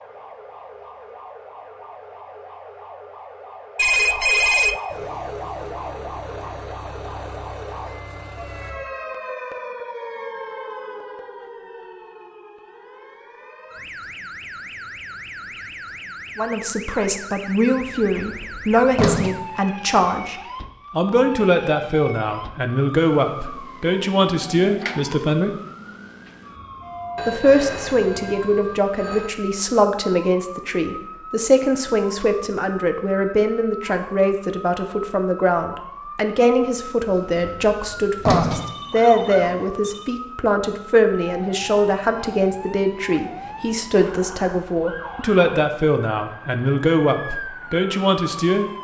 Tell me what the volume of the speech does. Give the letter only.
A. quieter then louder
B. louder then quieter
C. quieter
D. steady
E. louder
D.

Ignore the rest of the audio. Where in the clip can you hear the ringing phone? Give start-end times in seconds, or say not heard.
3.8-4.8, 27.1-29.4, 38.5-40.1.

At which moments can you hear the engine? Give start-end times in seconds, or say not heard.
4.8-8.8.